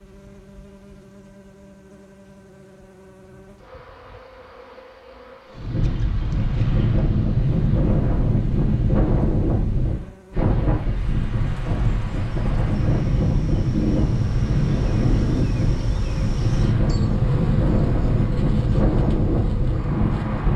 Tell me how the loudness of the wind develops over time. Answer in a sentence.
The volume of the wind stays about the same.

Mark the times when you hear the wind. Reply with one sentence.
You can hear the wind from 5.5 to 20.5 s.